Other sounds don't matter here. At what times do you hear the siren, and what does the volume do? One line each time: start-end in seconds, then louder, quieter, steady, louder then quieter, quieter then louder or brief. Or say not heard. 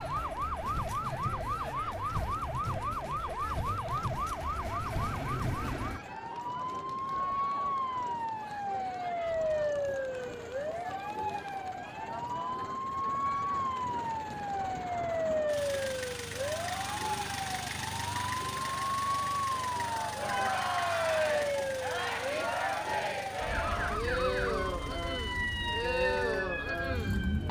0.0-27.4 steady.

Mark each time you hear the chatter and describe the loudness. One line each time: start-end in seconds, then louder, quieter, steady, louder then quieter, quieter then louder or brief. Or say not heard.
0.0-27.4 louder.